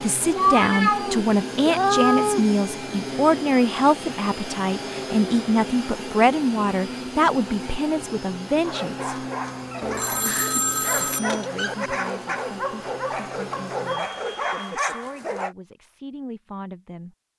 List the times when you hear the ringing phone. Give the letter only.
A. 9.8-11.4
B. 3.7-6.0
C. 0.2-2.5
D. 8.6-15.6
A.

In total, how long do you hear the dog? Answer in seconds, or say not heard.
7 s.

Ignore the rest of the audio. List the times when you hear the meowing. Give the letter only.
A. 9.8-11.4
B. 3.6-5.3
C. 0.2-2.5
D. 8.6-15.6
C.